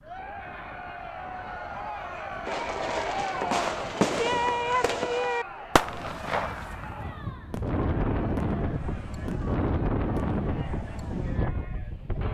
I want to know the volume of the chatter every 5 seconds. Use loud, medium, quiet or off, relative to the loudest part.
loud, medium, medium.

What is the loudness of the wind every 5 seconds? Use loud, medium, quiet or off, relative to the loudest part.
quiet, loud, loud.